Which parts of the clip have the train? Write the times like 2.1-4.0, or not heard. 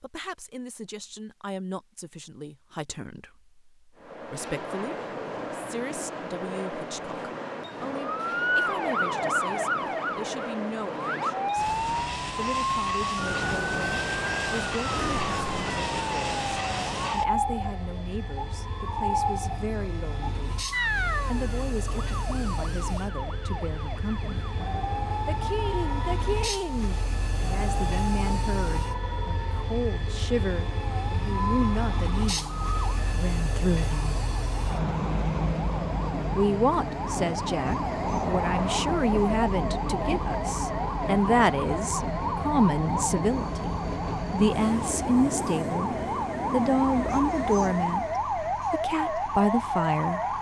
4.0-48.2.